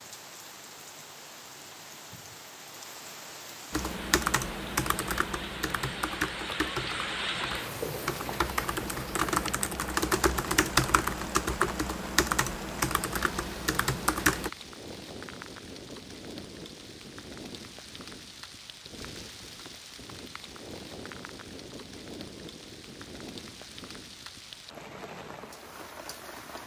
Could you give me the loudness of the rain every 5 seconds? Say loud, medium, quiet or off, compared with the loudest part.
medium, loud, medium, medium, medium, medium.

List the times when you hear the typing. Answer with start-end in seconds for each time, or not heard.
3.7-14.5.